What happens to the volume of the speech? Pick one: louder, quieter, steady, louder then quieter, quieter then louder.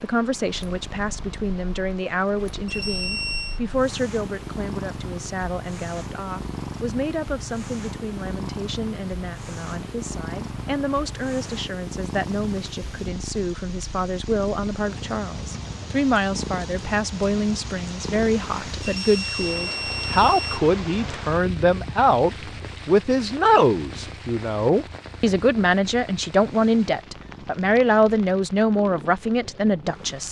louder.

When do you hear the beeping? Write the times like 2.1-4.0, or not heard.
2.6-3.6, 18.8-20.6.